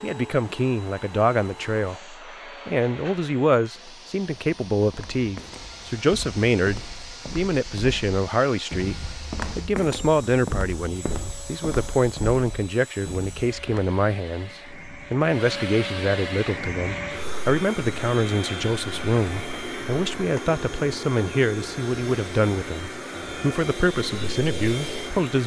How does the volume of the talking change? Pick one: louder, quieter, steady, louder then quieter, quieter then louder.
steady.